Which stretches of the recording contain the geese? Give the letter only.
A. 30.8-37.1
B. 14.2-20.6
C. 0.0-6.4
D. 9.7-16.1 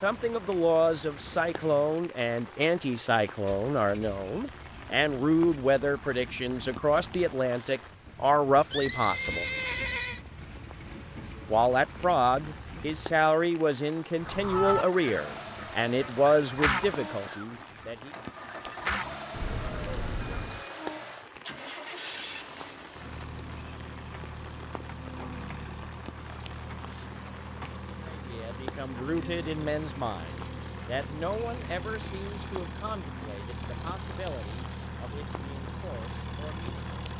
B.